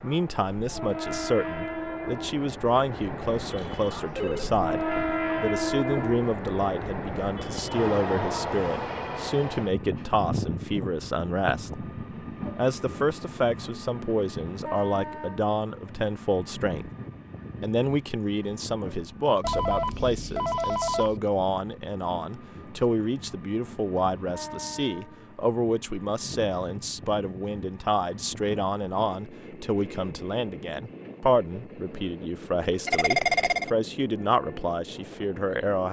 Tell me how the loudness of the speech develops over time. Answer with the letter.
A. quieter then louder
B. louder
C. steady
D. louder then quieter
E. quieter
C.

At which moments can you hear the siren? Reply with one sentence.
You can't hear the siren here.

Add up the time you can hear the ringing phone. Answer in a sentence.
The ringing phone can be heard for 4 seconds in total.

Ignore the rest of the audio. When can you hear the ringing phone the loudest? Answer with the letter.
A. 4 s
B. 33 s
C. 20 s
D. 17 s
B.